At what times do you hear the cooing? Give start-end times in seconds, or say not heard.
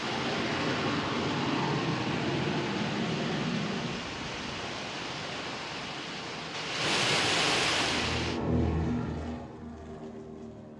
not heard.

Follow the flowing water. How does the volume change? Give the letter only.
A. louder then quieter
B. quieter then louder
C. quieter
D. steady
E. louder
E.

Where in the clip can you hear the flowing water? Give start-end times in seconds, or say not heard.
0.0-8.4.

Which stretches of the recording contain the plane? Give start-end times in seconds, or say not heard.
0.0-4.8, 7.8-10.7.